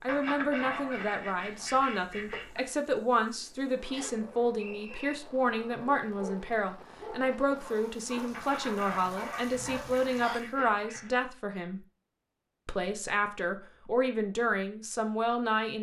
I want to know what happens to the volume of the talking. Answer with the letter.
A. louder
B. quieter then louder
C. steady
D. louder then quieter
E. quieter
C.